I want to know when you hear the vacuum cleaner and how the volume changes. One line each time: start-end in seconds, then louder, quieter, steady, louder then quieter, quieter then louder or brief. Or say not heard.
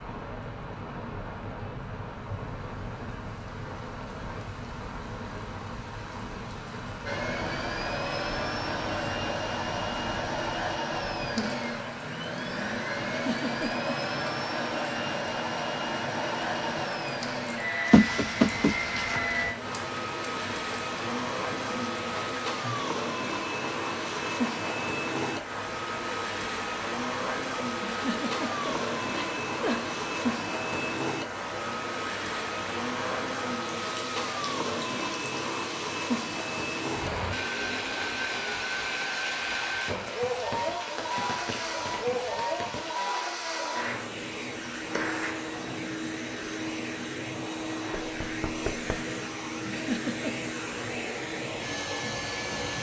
7.0-52.7 steady.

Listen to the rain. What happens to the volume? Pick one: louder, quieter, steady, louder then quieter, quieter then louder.
steady.